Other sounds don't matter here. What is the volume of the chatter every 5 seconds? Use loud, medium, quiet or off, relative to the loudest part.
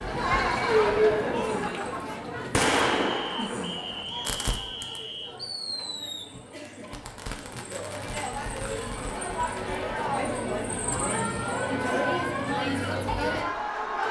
loud, medium, loud.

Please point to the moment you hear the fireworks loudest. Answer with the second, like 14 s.
3 s.